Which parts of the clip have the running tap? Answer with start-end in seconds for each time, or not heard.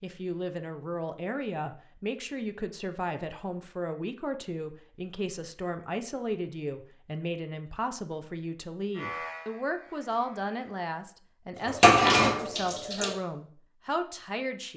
11.7-13.2.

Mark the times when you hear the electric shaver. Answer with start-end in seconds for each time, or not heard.
8.9-10.6.